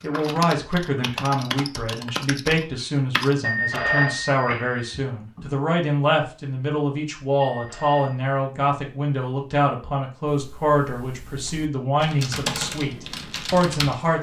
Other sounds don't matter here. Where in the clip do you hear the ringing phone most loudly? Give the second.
4 s.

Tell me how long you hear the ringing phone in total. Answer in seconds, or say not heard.
3 s.